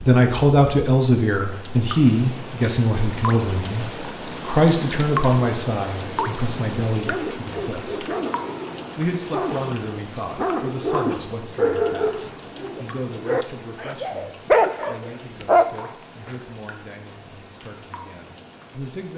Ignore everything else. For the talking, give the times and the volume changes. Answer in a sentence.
You can hear the talking from 0.0 to 8.1 s, getting quieter; and from 8.9 to 19.1 s, getting quieter.